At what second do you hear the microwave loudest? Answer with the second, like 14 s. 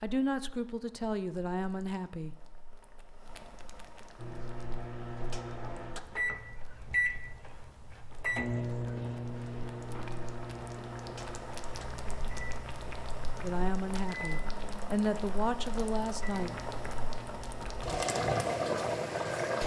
7 s.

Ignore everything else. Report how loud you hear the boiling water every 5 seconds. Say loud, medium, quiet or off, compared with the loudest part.
quiet, quiet, medium, loud.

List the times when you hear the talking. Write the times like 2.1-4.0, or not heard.
0.0-2.4, 13.4-16.6.